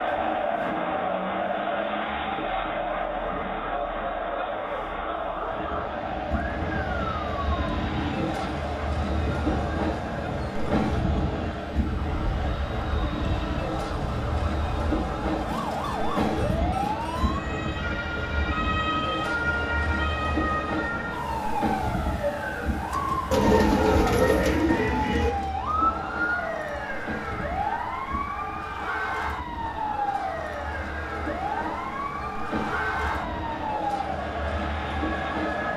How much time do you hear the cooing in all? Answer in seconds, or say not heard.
2 s.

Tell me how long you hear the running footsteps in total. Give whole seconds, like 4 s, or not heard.
not heard.